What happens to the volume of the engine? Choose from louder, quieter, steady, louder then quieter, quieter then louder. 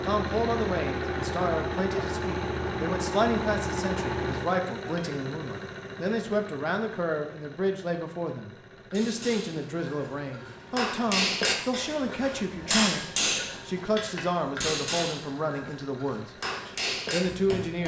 quieter.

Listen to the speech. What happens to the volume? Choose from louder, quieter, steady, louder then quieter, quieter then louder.
steady.